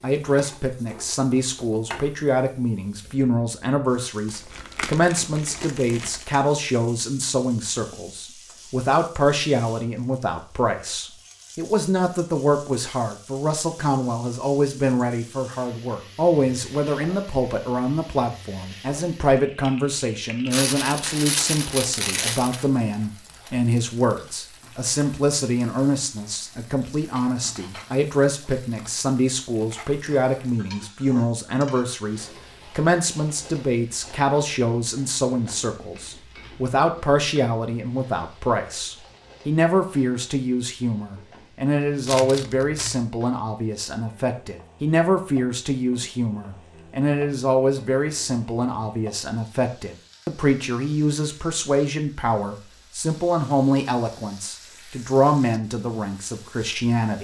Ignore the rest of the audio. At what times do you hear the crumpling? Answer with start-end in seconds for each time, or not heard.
4.2-6.2, 20.5-22.6, 42.0-43.0.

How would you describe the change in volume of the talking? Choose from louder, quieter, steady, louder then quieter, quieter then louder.
steady.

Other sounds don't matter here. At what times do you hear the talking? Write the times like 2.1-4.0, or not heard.
0.0-57.1.